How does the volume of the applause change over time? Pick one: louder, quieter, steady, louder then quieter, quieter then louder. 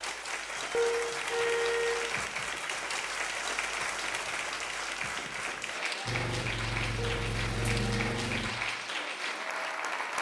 steady.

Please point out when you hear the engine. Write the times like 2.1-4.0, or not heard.
6.0-8.6.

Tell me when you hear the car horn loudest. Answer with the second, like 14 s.
1 s.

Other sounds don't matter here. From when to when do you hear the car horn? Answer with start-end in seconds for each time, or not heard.
0.7-2.0, 7.0-8.3.